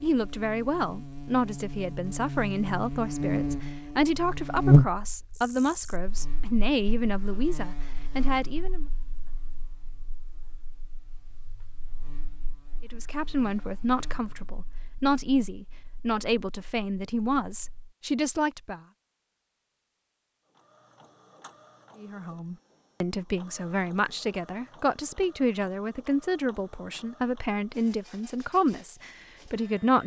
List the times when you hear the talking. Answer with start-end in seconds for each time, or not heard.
0.0-8.8, 12.9-18.8, 22.0-30.0.